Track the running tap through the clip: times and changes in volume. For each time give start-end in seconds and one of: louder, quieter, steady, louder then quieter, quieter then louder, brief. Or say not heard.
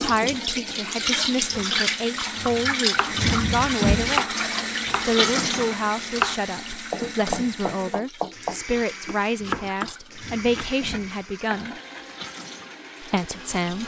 0.0-13.8 quieter.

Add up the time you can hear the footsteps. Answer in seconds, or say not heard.
not heard.